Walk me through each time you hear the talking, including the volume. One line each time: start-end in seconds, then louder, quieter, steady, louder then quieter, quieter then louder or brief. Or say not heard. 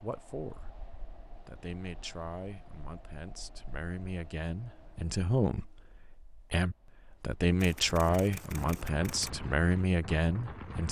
0.0-0.8 brief
1.4-10.8 louder.